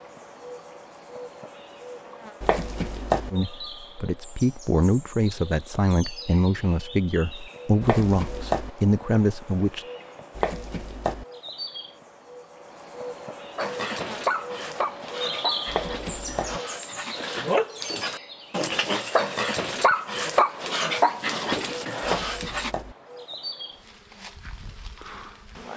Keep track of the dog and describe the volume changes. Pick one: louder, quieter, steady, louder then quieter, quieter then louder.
quieter then louder.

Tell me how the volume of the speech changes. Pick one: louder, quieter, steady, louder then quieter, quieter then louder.
steady.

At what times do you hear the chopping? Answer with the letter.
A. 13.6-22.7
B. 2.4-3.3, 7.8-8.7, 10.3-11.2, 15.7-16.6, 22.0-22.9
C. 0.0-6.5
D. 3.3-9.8
B.